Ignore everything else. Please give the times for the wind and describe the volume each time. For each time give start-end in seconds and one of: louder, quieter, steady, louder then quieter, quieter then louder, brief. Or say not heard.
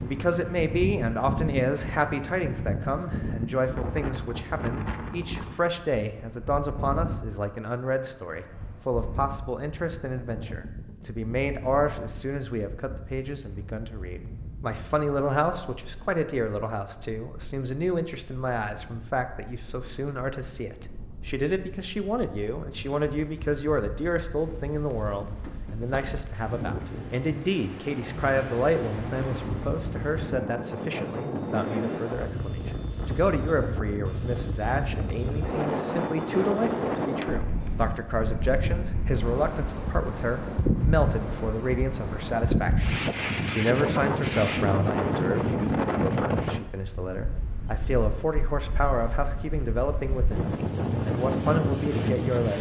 0.0-52.5 quieter then louder.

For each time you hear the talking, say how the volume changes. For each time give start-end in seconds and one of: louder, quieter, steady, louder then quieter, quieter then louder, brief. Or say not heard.
0.0-52.5 steady.